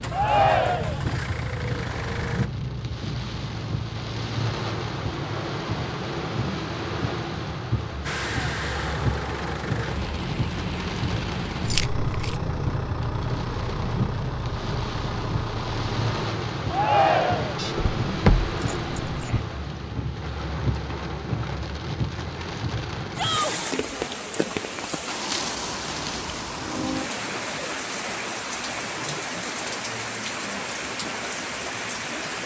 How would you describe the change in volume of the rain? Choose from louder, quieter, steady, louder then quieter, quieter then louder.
steady.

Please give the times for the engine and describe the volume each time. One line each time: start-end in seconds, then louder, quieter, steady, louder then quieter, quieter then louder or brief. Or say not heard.
0.0-2.5 brief
8.0-16.3 steady.